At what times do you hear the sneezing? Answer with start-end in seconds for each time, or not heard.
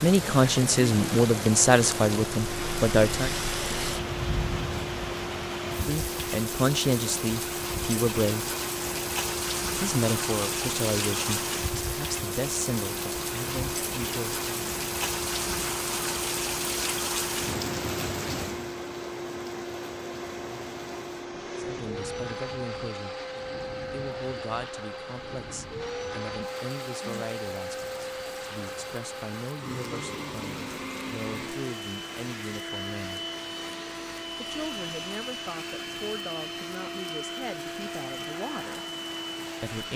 not heard.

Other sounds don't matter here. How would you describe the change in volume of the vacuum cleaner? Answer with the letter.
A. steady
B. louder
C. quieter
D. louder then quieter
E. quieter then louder
A.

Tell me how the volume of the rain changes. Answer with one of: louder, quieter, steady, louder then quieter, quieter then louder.
quieter.